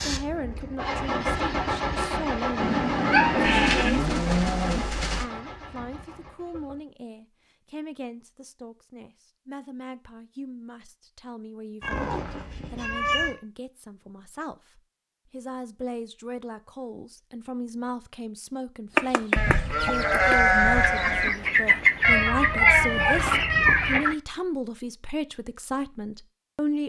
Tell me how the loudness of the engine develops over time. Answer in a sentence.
The loudness of the engine goes down.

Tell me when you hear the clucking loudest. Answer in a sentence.
The loudest moment of the clucking is at 22 seconds.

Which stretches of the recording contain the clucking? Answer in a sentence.
The clucking can be heard from 18.9 to 24.1 s.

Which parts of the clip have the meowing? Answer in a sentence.
You can hear the meowing from 2.5 to 3.9 s, from 11.8 to 13.3 s and from 22.0 to 24.0 s.